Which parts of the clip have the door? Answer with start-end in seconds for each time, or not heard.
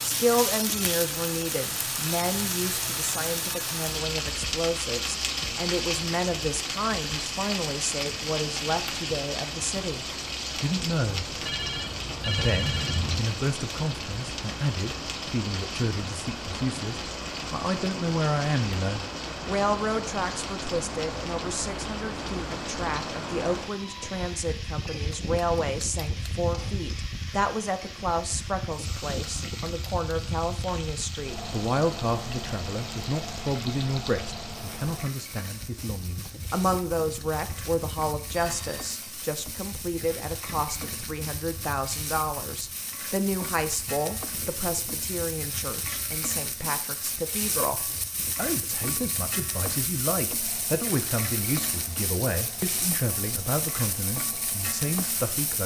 11.1-13.2.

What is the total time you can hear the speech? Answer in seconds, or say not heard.
55 s.